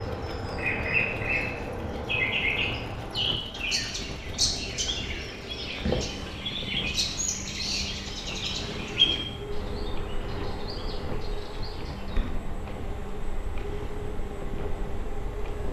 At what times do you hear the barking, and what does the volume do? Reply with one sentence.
You can't hear the barking here.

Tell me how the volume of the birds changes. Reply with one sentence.
The volume of the birds goes down.